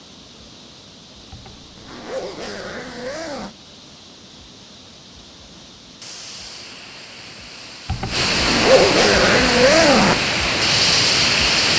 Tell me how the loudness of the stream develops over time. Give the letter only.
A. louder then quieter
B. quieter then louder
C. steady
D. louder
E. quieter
D.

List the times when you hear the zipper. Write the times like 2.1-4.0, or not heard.
1.3-3.5, 7.8-10.2.